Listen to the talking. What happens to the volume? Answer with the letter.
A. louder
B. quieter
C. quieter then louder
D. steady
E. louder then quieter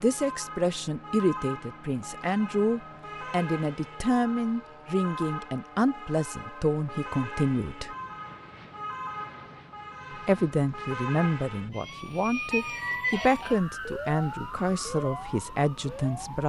D.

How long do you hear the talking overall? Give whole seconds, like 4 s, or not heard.
14 s.